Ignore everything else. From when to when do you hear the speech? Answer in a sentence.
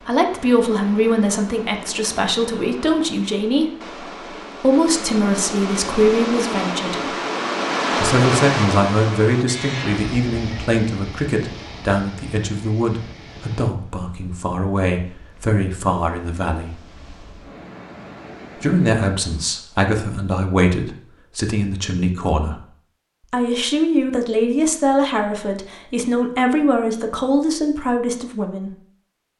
The speech can be heard from 0.0 to 7.2 s, from 8.0 to 16.8 s, from 18.6 to 22.6 s and from 23.3 to 28.8 s.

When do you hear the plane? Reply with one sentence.
The plane can't be heard in this clip.